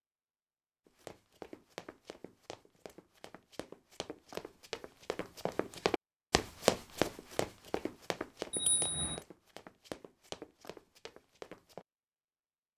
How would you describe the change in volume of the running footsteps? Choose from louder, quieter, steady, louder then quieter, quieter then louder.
louder then quieter.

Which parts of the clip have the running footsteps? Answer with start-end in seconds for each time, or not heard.
0.8-11.8.